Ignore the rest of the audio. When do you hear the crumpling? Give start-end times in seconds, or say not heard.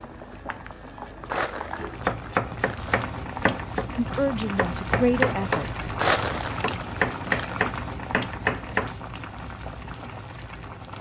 1.2-3.0, 6.0-7.6.